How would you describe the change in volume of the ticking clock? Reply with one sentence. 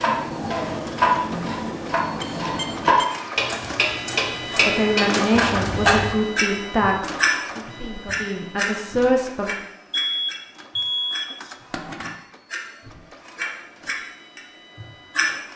The loudness of the ticking clock goes down.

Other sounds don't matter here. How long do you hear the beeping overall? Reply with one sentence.
You can hear the beeping for 3 seconds altogether.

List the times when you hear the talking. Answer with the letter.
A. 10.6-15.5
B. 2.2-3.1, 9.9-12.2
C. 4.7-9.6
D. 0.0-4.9
C.